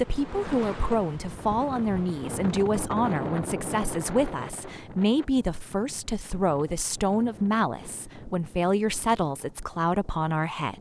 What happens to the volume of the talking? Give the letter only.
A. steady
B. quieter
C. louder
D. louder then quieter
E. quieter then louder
A.